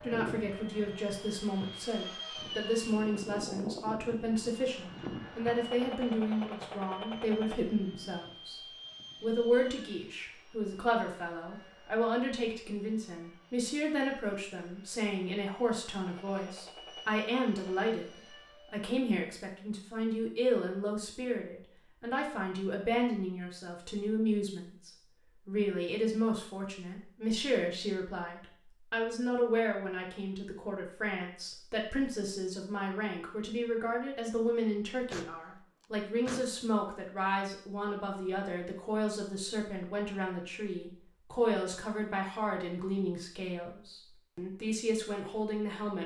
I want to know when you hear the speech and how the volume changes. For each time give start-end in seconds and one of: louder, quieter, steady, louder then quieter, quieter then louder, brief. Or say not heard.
0.0-18.1 steady
18.7-46.0 steady.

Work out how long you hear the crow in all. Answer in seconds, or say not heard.
not heard.